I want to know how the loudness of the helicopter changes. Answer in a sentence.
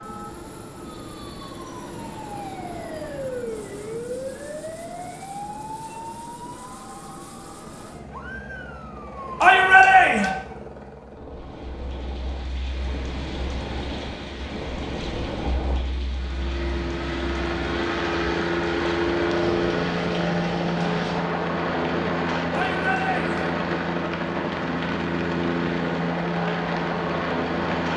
The volume of the helicopter goes up.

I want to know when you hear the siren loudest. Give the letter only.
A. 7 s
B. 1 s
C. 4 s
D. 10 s
C.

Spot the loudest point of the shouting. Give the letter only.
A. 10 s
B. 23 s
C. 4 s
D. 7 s
A.